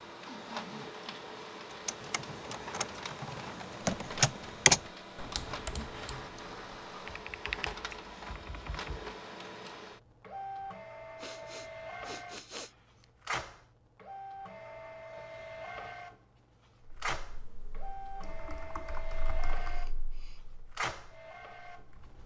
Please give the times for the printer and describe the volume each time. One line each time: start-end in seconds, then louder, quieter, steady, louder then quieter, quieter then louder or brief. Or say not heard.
0.0-22.2 steady.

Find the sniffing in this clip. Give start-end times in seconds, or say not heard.
0.2-1.3, 11.2-12.7, 19.6-20.4.